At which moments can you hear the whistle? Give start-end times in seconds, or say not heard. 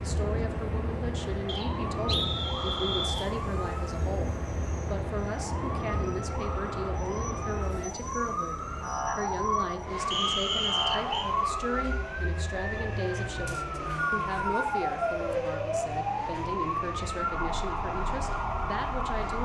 1.4-3.2, 10.1-11.3, 13.4-15.3.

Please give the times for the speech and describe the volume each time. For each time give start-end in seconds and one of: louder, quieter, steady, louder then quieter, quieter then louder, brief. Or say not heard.
0.0-19.4 steady.